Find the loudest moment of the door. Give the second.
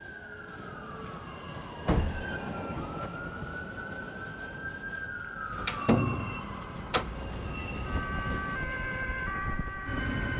6 s.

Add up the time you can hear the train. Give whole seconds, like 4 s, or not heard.
10 s.